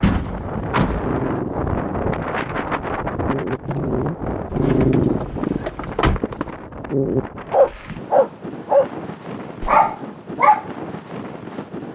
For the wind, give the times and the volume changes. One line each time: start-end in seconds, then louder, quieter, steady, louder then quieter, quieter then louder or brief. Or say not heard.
0.0-11.9 quieter.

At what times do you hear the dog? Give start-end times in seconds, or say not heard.
0.9-8.9, 9.7-10.7.